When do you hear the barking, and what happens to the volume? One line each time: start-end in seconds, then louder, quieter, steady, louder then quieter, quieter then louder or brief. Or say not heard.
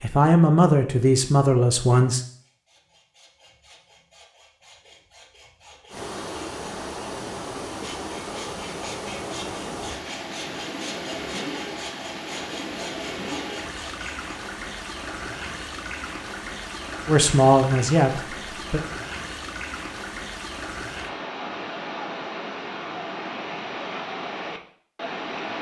not heard.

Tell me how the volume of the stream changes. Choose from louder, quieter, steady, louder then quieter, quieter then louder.
steady.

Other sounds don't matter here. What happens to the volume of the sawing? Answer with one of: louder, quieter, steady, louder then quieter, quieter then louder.
louder.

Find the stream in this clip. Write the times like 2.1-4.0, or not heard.
5.9-25.5.